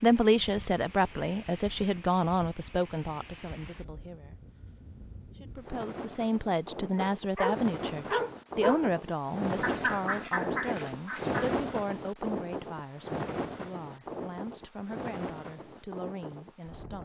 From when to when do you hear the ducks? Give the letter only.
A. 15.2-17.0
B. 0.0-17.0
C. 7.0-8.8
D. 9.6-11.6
D.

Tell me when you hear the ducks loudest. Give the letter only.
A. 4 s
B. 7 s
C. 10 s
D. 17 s
C.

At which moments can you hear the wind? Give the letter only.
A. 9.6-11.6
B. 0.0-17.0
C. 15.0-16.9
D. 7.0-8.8
B.